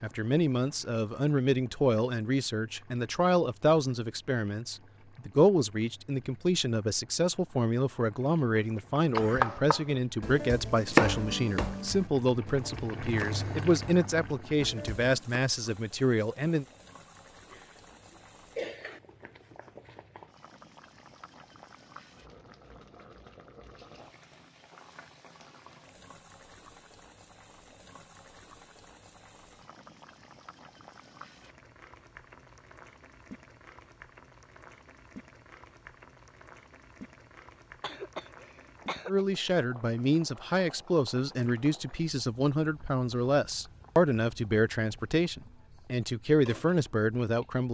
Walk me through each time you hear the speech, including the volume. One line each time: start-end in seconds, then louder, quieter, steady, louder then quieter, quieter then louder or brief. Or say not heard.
0.0-16.6 steady
39.0-47.7 steady.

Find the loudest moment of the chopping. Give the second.
11 s.